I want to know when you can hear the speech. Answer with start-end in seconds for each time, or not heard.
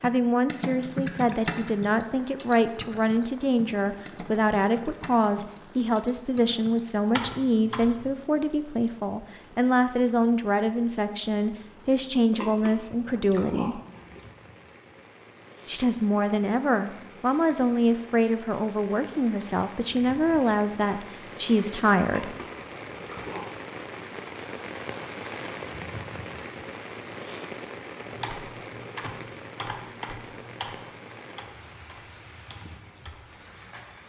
0.0-13.8, 15.7-22.4.